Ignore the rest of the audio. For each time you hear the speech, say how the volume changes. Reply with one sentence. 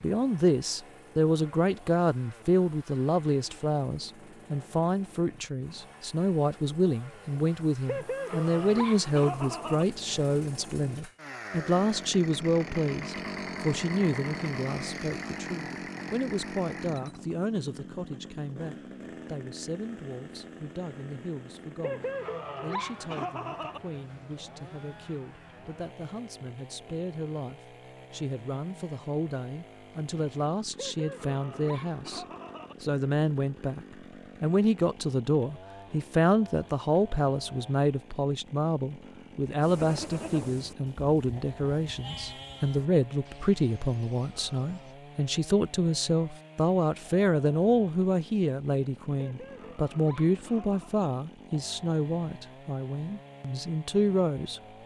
The speech can be heard from 0.0 to 54.6 s, getting quieter then louder.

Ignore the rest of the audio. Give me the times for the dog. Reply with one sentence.
The dog can be heard from 7.8 to 9.8 s, from 21.8 to 23.8 s, from 30.8 to 32.8 s and from 49.1 to 51.0 s.